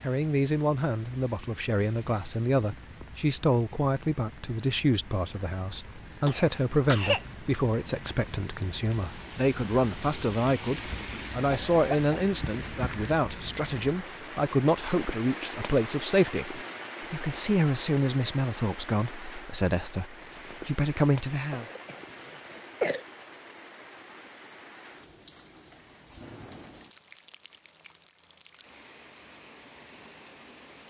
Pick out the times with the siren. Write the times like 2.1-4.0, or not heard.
not heard.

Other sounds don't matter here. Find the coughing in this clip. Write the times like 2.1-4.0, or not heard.
6.2-7.3, 11.5-12.2, 21.5-23.1.